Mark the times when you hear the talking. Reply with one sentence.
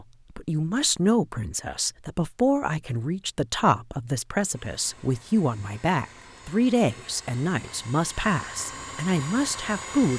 The talking can be heard from 0.0 to 10.1 s.